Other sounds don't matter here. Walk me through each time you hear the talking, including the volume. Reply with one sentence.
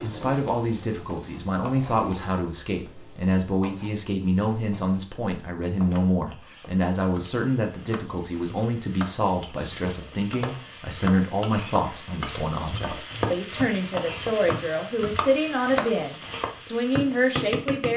You can hear the talking from 0.0 to 17.9 s, at a steady volume.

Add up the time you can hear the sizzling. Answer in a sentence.
The sizzling can be heard for 18 seconds in total.